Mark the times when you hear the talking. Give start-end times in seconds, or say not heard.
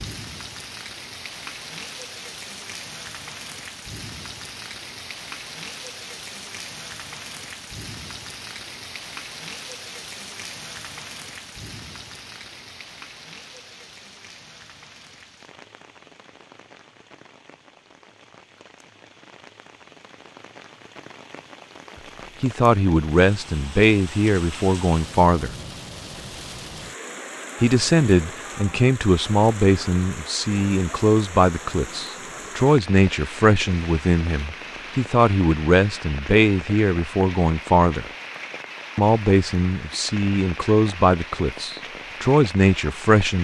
22.4-25.5, 27.6-38.0, 39.0-43.3.